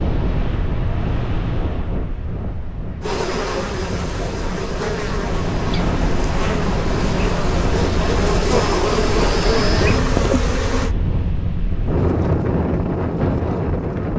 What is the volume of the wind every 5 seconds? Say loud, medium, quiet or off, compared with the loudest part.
medium, loud, loud.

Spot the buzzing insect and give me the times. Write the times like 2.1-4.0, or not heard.
3.0-10.9.